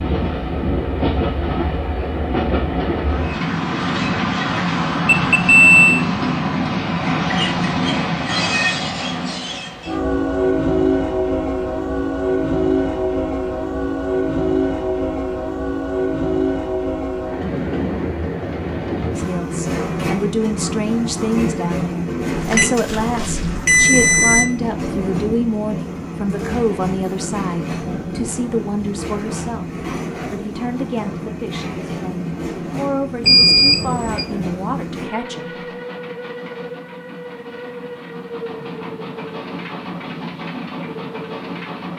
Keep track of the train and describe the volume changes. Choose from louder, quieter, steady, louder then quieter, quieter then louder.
quieter.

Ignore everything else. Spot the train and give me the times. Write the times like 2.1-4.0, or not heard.
0.0-41.9.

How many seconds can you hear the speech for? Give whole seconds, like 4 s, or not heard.
16 s.